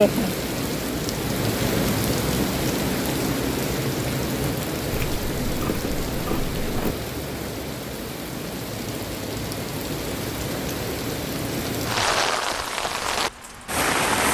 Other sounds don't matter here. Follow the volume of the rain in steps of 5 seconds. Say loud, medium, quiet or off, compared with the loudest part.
loud, medium, loud.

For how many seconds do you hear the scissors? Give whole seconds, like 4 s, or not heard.
2 s.